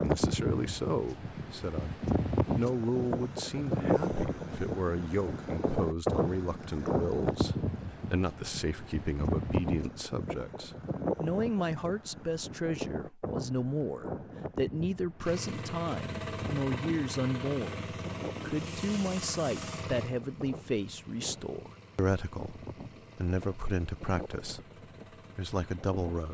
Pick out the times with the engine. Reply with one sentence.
The engine can be heard from 15.2 to 26.3 s.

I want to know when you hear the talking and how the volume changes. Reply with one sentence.
You can hear the talking briefly from 0.0 to 1.9 s; from 2.5 to 24.6 s, at a steady volume; and briefly from 25.4 to 26.3 s.